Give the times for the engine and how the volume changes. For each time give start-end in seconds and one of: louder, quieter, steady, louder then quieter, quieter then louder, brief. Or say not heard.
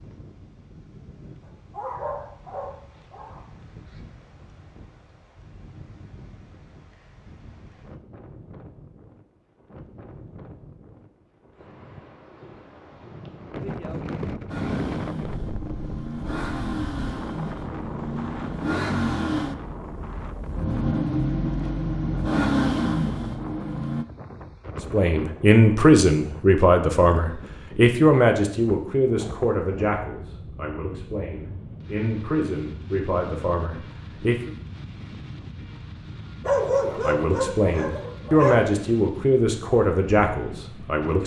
14.4-24.1 louder.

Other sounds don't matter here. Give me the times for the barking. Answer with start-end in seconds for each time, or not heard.
1.4-3.4, 36.5-38.6.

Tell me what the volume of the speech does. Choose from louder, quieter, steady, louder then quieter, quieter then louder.
quieter then louder.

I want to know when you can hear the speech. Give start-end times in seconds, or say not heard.
24.9-34.5, 37.0-41.2.